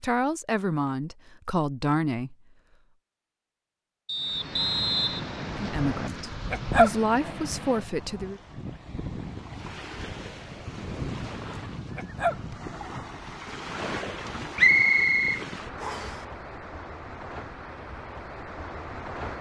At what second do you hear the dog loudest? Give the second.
7 s.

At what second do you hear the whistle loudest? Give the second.
15 s.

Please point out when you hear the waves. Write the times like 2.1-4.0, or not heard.
4.2-19.3.